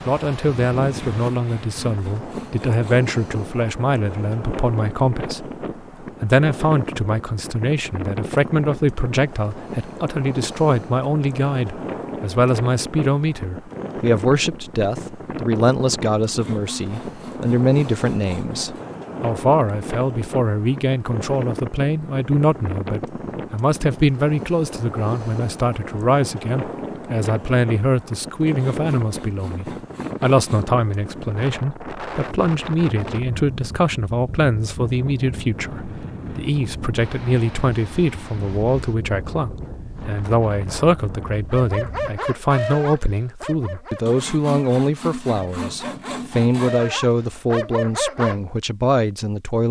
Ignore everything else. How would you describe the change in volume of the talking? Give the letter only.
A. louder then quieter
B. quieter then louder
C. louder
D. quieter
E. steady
E.